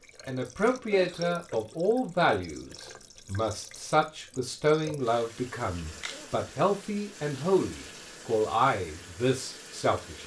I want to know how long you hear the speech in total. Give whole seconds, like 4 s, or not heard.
10 s.